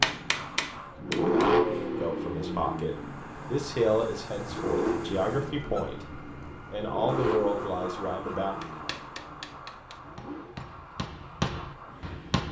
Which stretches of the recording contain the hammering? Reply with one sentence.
You can hear the hammering from 0.0 to 1.6 s and from 8.6 to 12.4 s.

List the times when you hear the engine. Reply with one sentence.
You can hear the engine from 0.0 to 10.6 s.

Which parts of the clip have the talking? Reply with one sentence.
You can hear the talking from 1.9 to 6.0 s and from 6.7 to 8.6 s.